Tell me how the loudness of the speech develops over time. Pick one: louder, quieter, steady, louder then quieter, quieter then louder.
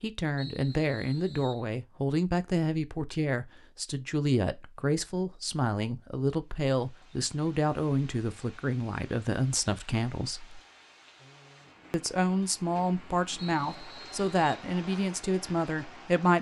steady.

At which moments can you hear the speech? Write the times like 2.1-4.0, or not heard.
0.0-10.6, 11.9-16.3.